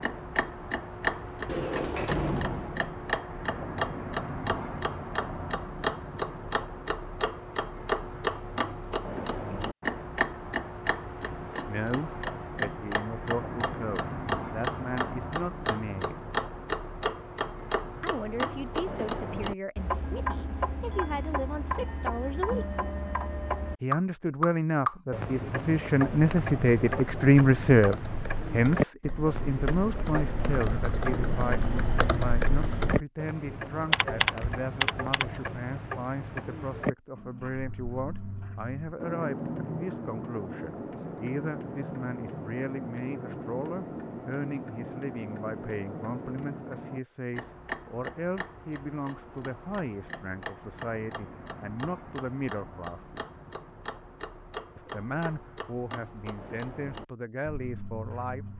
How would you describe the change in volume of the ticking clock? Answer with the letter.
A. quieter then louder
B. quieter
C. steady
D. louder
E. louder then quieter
B.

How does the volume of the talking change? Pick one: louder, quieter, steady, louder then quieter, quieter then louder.
louder then quieter.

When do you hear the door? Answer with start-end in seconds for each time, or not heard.
1.4-2.9.